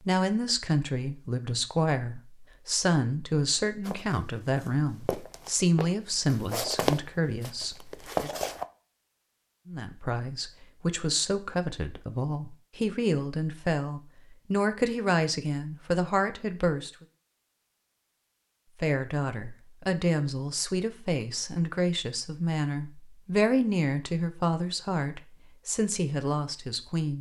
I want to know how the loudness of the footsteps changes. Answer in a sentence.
The volume of the footsteps goes up.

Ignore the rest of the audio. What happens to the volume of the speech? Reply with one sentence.
The loudness of the speech stays about the same.